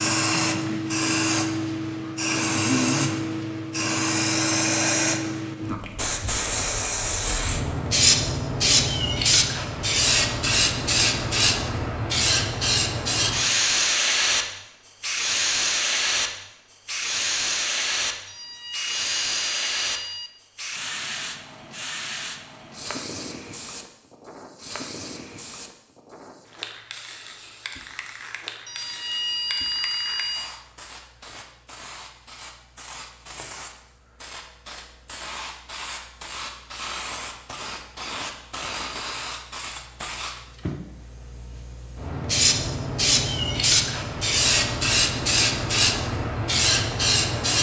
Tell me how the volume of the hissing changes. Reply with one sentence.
The volume of the hissing goes down, then up.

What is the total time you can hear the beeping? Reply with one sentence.
The beeping can be heard for 4 seconds in total.